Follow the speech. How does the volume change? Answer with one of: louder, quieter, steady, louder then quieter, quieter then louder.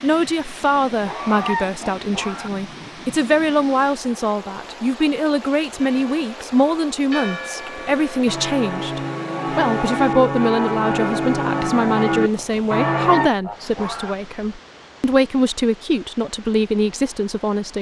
steady.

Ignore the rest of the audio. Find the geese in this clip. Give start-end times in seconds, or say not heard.
0.8-2.5, 12.3-14.2.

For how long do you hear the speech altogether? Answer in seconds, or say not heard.
18 s.